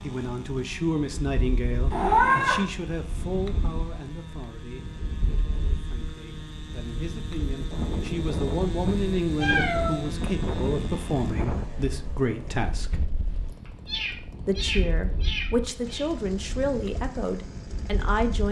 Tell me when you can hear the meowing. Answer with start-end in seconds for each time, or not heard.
1.9-2.6, 9.3-10.1, 13.7-16.1.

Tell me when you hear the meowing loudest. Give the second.
2 s.